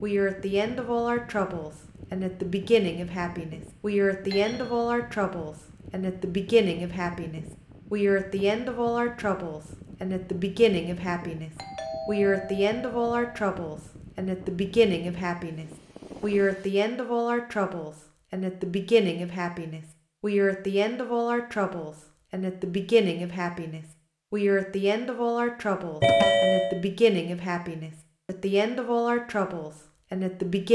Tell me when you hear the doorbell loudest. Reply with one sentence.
The volume of the doorbell peaks at 26 seconds.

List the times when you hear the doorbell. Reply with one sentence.
You can hear the doorbell from 4.3 to 4.8 s, from 11.6 to 13.2 s and from 26.0 to 26.8 s.